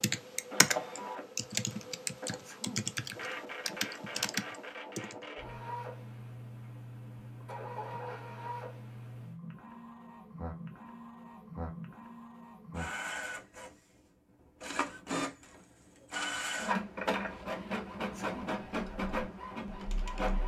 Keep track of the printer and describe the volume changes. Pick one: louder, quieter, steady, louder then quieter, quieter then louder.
louder.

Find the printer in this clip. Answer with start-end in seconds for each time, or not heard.
0.0-20.4.